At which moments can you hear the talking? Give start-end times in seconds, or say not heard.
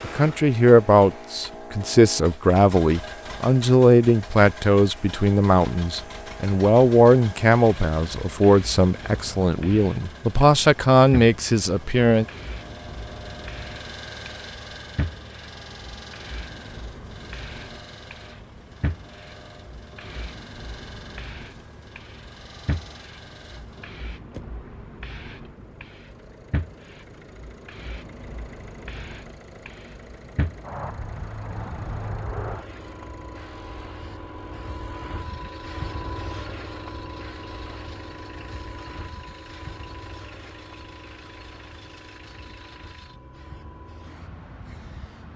0.0-12.2.